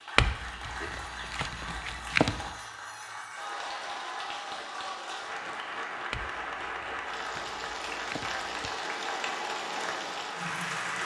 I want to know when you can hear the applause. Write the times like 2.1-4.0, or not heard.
0.0-11.0.